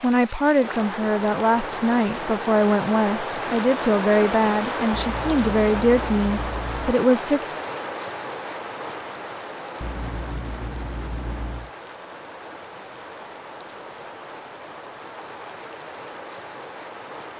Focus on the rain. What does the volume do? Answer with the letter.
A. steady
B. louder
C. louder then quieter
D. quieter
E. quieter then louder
D.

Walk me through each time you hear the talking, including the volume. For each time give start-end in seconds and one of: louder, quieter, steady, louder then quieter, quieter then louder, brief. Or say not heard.
0.0-7.5 steady.